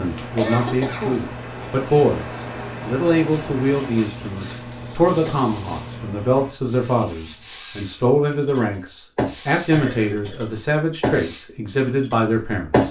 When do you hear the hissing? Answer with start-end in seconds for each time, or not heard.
0.0-12.8.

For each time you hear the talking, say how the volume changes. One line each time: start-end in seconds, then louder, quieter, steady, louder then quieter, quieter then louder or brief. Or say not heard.
0.0-12.8 steady.